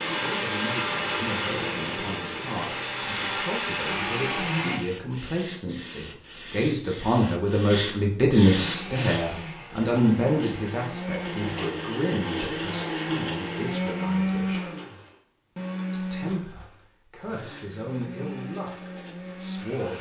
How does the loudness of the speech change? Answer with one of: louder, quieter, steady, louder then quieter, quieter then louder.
louder then quieter.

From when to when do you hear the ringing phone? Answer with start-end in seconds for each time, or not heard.
not heard.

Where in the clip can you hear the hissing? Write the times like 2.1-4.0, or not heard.
0.0-9.2.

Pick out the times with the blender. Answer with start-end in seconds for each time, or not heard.
0.0-4.8, 8.6-19.9.